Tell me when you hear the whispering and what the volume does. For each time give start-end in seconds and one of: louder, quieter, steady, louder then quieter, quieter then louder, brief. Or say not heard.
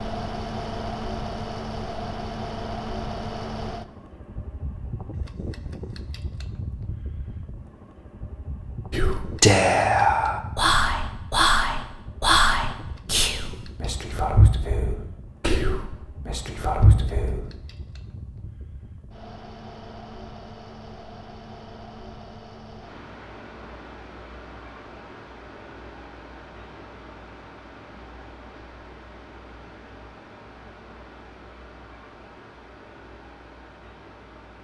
8.9-17.4 quieter.